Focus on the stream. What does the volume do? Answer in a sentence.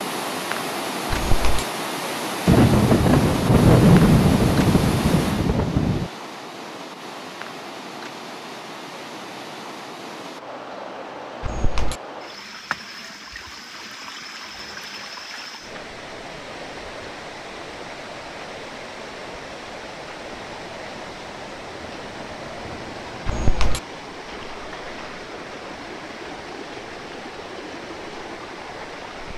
The loudness of the stream goes down.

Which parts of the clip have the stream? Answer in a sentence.
The stream can be heard from 0.0 to 29.3 s.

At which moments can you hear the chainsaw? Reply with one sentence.
You can't hear the chainsaw here.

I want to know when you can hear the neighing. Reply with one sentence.
The neighing can be heard from 1.1 to 1.6 s, from 11.4 to 12.0 s and from 23.2 to 23.8 s.